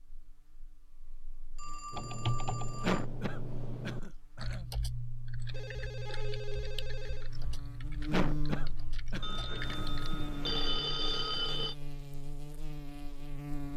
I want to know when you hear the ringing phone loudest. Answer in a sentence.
The loudest moment of the ringing phone is at 11 seconds.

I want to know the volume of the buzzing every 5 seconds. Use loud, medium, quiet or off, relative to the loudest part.
quiet, loud, loud.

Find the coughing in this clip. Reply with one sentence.
The coughing can be heard from 2.8 to 4.7 s and from 8.1 to 9.9 s.